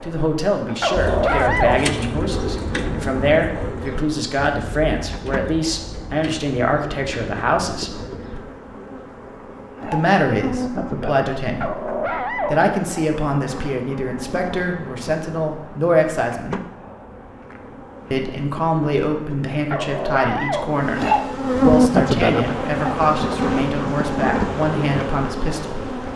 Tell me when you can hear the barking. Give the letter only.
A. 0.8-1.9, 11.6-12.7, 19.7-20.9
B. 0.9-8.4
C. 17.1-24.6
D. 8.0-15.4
A.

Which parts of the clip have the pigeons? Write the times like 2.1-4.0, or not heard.
0.9-8.4.